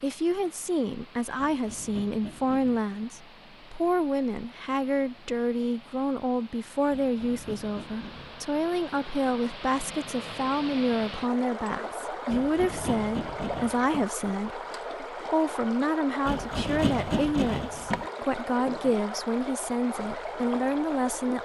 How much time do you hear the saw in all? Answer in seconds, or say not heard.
7 s.